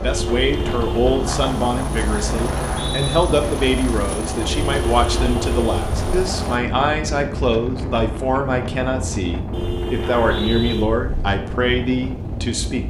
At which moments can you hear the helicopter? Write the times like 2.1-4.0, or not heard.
0.0-6.6.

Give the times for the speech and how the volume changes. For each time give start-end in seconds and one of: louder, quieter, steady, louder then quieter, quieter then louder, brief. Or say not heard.
0.0-12.8 steady.